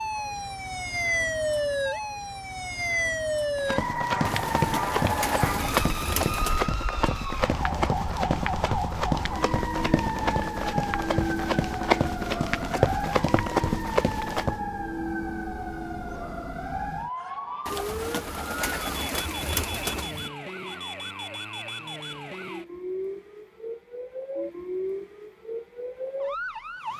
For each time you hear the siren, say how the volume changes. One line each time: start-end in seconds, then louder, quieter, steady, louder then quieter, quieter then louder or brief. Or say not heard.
0.0-26.9 quieter.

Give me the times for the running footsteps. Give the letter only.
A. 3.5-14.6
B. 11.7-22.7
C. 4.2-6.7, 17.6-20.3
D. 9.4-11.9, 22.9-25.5
A.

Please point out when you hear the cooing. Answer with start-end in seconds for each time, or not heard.
4.2-6.7, 17.6-20.3.